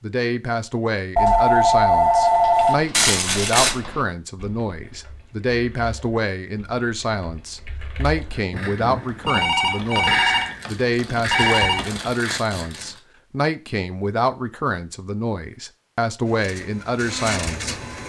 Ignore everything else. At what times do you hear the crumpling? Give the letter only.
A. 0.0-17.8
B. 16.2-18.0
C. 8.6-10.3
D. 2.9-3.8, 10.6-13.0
D.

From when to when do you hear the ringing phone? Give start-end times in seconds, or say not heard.
1.1-2.8, 9.2-11.8.